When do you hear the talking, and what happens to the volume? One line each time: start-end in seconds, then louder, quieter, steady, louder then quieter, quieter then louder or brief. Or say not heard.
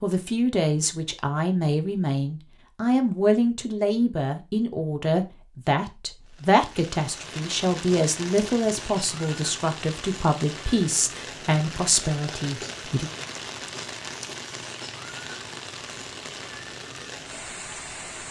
0.0-13.1 steady.